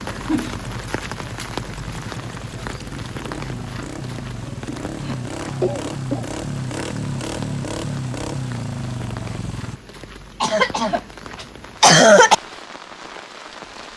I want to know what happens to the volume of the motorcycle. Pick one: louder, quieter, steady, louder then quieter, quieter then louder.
louder.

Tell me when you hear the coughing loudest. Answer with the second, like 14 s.
12 s.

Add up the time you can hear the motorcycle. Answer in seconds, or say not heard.
10 s.